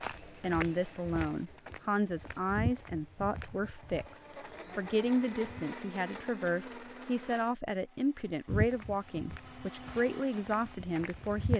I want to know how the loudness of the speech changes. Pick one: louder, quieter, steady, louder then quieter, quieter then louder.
steady.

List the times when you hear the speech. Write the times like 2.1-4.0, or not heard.
0.2-11.5.